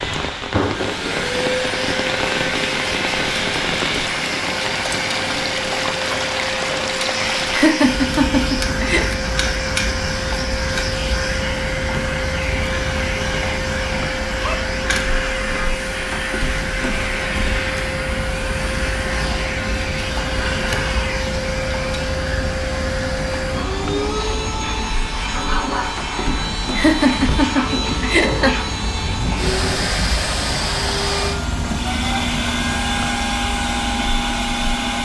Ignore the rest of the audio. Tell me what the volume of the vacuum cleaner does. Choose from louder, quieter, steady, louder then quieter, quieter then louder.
steady.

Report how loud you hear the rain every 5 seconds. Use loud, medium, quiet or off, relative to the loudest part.
loud, loud, medium, medium, medium, medium, medium.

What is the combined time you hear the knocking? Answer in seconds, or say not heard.
3 s.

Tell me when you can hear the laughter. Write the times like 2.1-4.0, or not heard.
7.5-9.1, 26.8-28.6.